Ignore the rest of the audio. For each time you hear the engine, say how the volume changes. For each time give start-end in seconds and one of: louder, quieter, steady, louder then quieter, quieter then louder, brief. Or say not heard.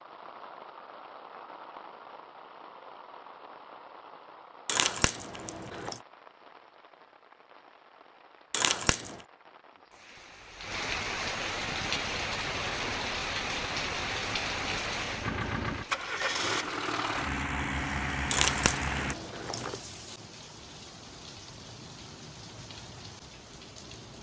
11.7-19.1 louder.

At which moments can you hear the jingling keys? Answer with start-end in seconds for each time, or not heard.
4.7-6.0, 8.5-9.2, 18.3-19.8.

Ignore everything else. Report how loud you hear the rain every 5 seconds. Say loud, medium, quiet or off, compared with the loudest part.
quiet, quiet, loud, medium, quiet.